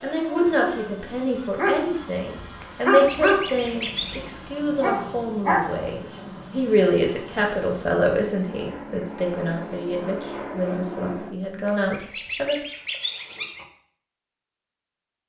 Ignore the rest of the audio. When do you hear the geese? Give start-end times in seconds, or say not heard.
2.6-4.2, 11.7-13.7.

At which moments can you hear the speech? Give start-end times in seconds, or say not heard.
0.0-12.6.